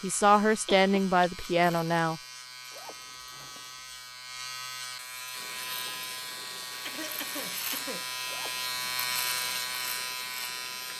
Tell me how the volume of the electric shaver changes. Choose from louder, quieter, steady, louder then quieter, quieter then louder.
louder.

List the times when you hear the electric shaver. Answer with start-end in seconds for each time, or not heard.
0.0-10.9.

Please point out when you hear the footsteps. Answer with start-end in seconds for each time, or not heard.
not heard.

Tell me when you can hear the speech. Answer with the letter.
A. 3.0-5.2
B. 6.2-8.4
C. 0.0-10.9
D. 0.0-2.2
D.